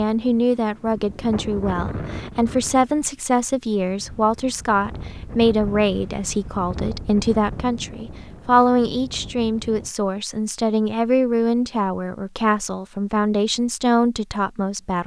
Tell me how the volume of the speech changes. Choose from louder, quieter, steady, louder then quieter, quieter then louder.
steady.